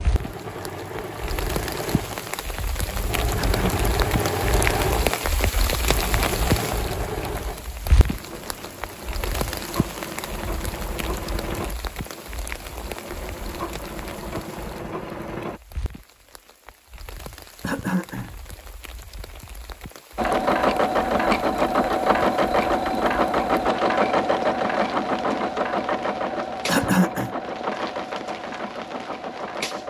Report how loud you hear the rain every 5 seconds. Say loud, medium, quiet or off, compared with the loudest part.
loud, loud, medium, quiet, medium, medium.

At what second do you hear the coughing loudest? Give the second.
27 s.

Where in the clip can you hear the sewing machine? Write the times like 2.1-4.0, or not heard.
0.0-15.6, 20.1-29.8.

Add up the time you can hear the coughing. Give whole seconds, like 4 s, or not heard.
2 s.